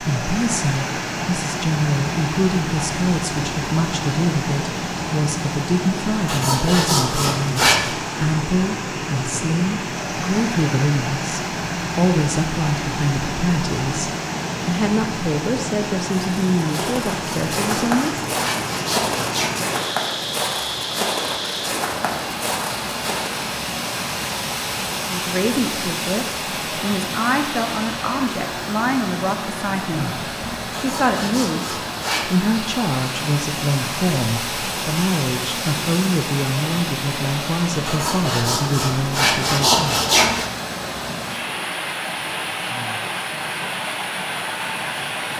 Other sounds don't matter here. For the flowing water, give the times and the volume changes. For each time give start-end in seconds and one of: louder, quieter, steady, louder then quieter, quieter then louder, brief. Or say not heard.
0.0-45.3 steady.